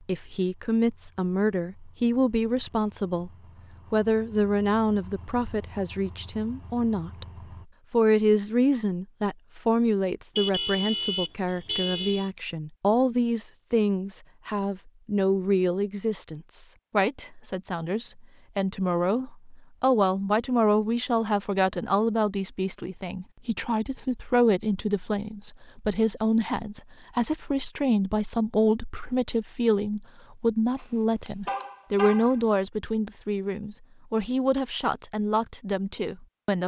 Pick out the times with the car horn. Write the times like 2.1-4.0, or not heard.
10.3-12.3, 30.8-32.4.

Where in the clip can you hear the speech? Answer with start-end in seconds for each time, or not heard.
0.1-3.3, 3.9-7.2, 7.9-36.6.